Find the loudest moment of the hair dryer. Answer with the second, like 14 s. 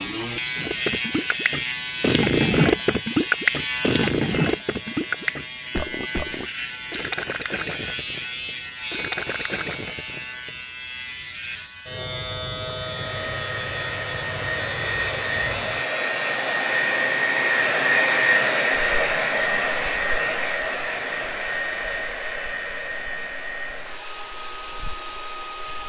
18 s.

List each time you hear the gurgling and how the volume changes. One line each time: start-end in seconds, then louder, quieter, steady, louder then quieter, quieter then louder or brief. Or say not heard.
0.6-10.6 quieter.